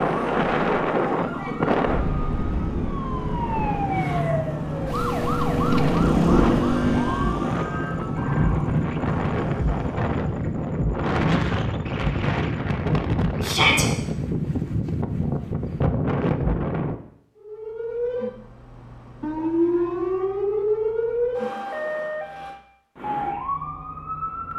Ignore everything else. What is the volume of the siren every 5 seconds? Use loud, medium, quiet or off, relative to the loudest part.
loud, loud, off, loud, loud.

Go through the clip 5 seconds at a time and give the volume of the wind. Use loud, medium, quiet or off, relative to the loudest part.
loud, loud, loud, loud, off.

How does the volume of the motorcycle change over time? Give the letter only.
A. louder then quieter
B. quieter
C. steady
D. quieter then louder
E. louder
A.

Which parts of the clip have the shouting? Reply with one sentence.
The shouting can be heard from 13.4 to 13.8 s.